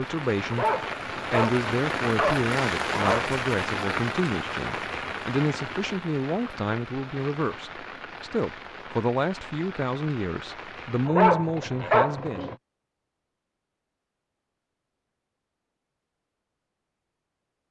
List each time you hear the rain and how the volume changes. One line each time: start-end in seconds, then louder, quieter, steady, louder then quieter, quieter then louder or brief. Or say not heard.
0.0-11.1 quieter.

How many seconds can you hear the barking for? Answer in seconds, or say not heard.
4 s.